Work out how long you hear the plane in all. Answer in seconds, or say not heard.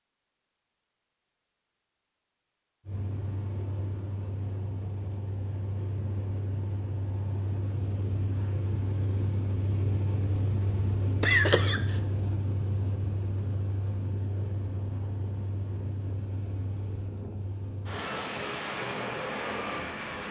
17 s.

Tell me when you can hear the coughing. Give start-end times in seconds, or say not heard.
11.2-12.0.